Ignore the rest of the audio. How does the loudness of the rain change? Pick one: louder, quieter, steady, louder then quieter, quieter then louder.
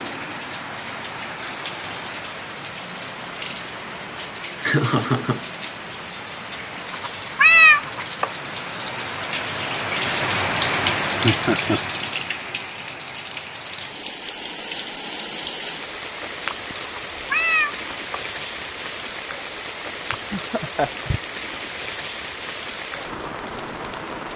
louder then quieter.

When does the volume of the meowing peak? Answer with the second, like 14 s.
8 s.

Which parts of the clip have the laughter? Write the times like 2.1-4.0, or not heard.
4.6-5.5, 11.2-11.8, 20.1-21.2.